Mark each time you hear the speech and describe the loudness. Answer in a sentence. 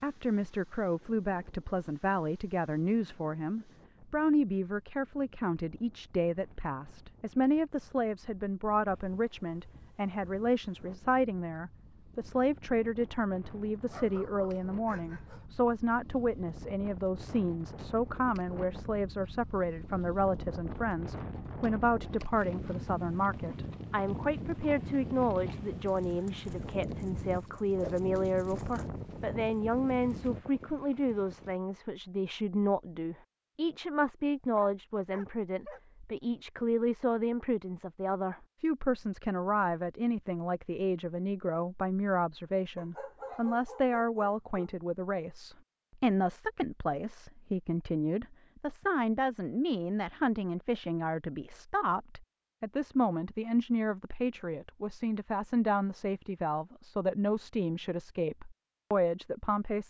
The speech can be heard from 0.0 to 59.8 s, at a steady volume.